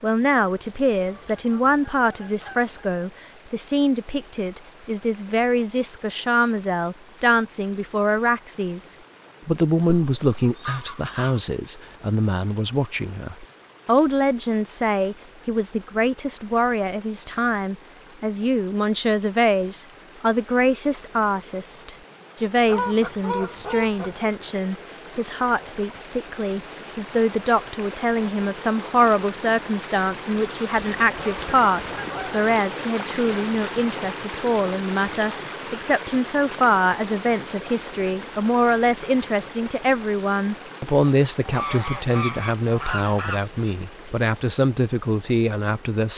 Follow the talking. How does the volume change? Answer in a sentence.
The loudness of the talking stays about the same.